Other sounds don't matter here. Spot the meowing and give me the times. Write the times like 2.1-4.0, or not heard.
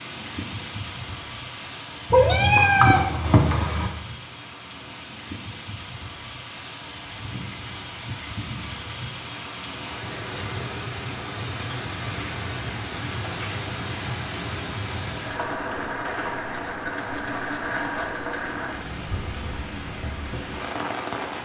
2.1-3.9.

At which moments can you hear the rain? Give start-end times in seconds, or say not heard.
0.0-21.3.